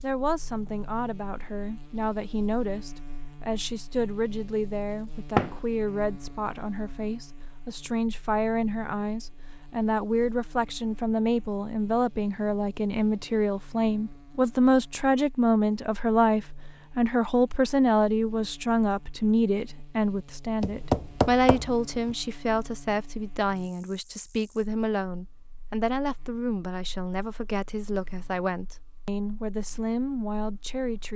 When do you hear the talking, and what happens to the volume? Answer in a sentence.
The talking can be heard from 0.0 to 31.1 s, getting louder then quieter.